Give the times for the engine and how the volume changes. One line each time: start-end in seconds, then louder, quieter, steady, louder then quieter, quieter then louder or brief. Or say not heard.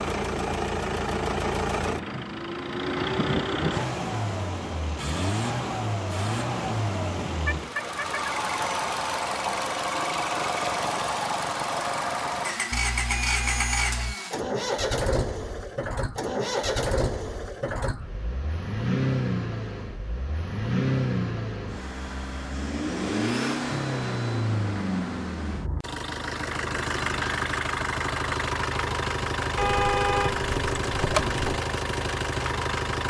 0.0-33.0 steady.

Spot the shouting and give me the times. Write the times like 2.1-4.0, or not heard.
not heard.